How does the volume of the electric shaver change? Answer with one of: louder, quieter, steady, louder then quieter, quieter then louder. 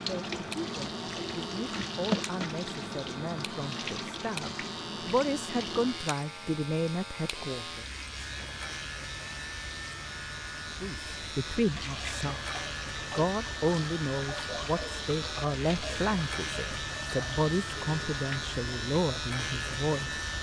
louder.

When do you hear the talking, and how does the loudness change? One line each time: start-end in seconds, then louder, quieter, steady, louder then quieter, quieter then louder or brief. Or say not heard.
0.0-7.8 louder
10.8-12.4 brief
13.1-20.2 steady.